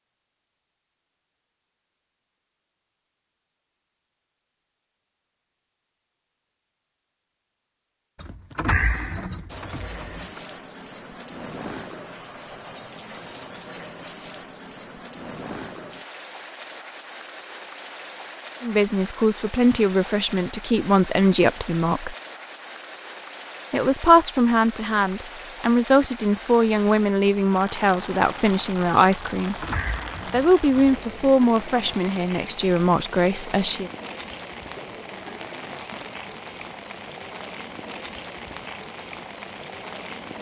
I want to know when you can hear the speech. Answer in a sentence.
The speech can be heard from 18.6 to 22.1 s, from 23.7 to 29.6 s and from 30.3 to 33.9 s.